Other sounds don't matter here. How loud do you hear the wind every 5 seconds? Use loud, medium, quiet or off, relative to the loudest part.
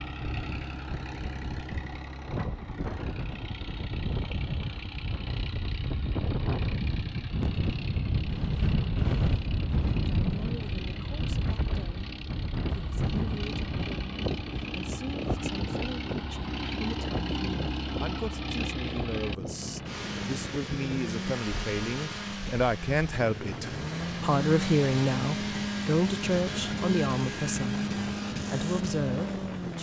medium, loud, loud, medium, medium, medium.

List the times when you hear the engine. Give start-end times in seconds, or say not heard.
0.0-29.7.